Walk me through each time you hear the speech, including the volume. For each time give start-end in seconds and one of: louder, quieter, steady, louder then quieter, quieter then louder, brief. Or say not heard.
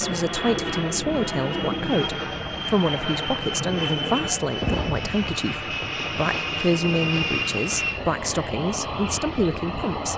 0.0-10.1 steady.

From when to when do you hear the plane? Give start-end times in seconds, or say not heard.
0.0-10.1.